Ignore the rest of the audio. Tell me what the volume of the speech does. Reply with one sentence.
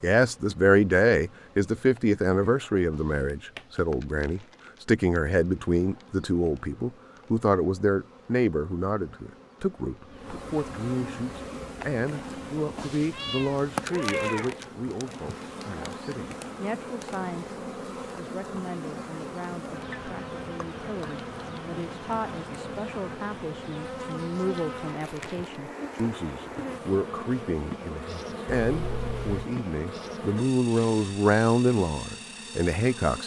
The volume of the speech goes down, then up.